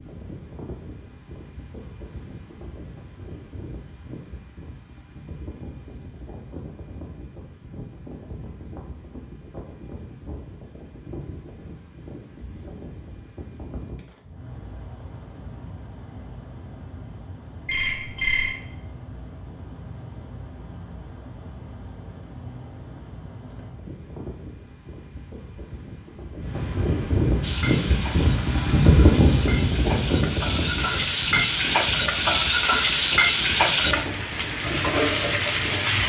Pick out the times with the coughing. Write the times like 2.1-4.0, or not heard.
not heard.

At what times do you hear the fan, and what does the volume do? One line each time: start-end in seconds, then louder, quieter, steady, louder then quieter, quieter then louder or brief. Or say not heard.
0.0-36.0 louder.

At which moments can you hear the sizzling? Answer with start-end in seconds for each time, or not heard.
27.4-36.0.